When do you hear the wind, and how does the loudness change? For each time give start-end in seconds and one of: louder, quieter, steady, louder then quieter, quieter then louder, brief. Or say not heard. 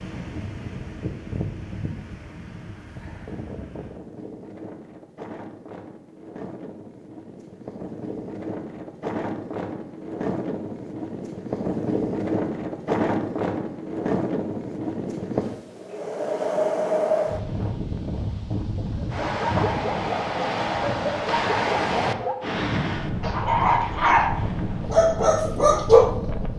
0.0-26.5 louder.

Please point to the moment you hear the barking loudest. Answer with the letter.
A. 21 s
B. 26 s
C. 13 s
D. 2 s
B.